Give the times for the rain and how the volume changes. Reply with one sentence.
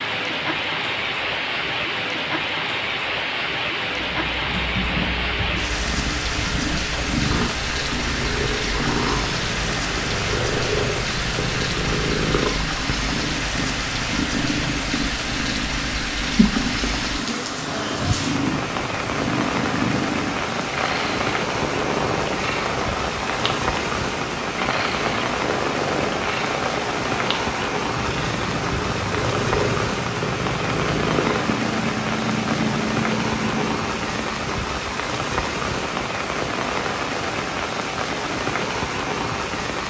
You can hear the rain from 0.0 to 39.8 s, at a steady volume.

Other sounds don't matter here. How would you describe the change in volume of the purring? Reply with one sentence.
The volume of the purring stays about the same.